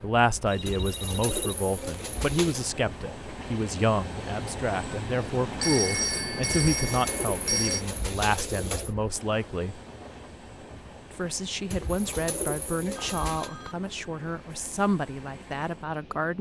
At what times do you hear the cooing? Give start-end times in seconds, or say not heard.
0.7-2.7, 6.5-8.9, 11.7-13.5.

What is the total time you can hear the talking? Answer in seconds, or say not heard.
15 s.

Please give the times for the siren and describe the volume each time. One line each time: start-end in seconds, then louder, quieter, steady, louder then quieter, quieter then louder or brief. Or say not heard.
not heard.